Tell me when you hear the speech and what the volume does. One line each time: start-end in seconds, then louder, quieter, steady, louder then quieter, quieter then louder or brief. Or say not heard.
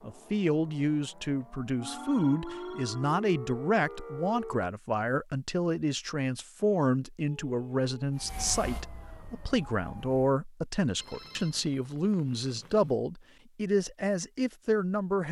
0.0-15.2 steady.